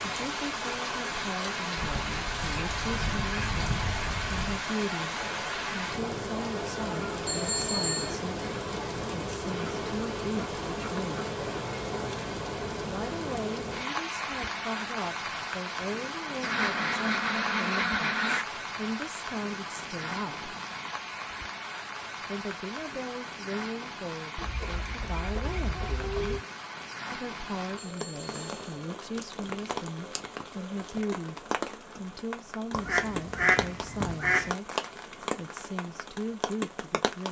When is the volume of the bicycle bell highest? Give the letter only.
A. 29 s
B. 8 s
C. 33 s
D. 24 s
B.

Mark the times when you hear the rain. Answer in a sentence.
You can hear the rain from 0.0 to 37.2 s.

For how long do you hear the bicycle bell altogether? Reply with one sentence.
The bicycle bell can be heard for 2 seconds in total.